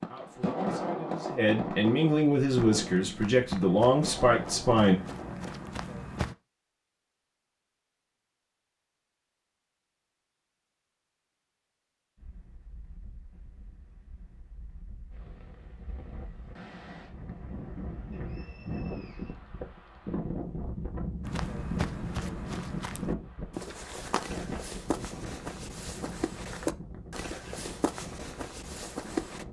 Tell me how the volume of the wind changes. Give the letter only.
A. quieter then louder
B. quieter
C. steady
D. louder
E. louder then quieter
E.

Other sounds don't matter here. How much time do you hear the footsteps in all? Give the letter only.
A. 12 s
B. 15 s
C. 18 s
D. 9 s
A.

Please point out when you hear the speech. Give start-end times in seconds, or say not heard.
0.0-5.0.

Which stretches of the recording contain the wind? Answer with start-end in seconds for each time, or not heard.
12.2-29.4.